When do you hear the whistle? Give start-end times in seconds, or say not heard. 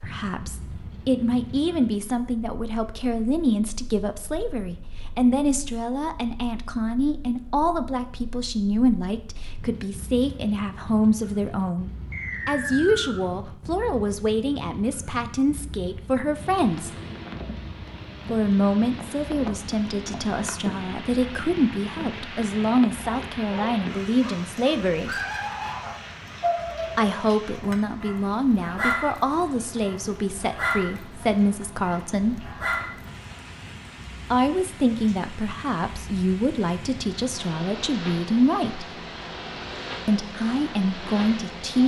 12.1-13.2.